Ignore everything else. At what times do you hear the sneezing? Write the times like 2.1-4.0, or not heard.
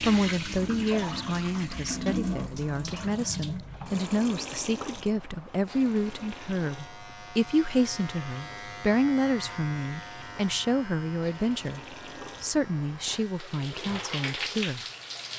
not heard.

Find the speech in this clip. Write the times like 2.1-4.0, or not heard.
0.0-11.8, 12.4-14.8.